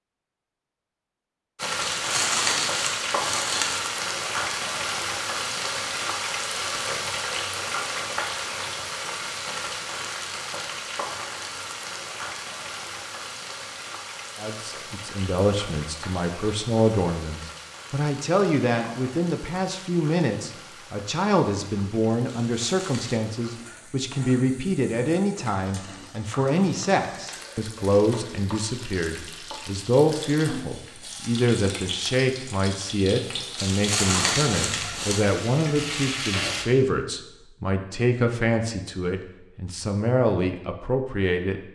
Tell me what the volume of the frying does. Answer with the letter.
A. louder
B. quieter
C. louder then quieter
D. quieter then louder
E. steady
D.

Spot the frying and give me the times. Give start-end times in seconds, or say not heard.
1.6-36.6.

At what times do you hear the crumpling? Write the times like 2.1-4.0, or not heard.
1.8-3.8, 22.2-23.2, 33.5-35.2.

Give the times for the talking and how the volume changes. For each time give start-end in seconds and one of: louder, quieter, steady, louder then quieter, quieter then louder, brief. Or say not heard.
14.3-41.6 steady.